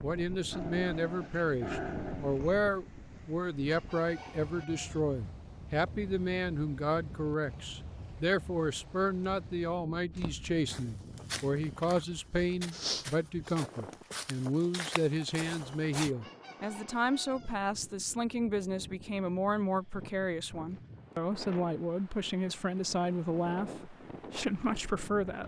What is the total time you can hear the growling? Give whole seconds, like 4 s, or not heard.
2 s.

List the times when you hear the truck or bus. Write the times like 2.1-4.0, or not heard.
not heard.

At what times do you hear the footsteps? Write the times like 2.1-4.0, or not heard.
10.1-16.1.